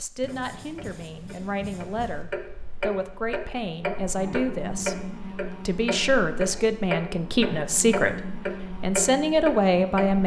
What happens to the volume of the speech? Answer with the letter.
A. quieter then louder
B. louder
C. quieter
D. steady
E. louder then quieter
B.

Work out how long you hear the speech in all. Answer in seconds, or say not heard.
10 s.